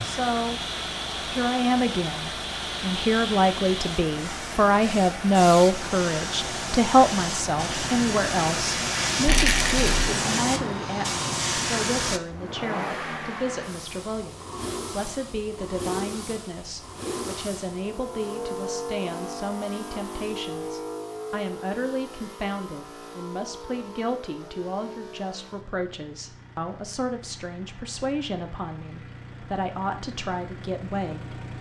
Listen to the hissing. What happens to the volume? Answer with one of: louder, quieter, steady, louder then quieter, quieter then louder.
louder.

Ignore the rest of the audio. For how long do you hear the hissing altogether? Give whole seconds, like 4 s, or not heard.
12 s.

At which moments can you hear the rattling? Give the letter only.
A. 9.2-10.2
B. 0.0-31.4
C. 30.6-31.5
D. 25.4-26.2
A.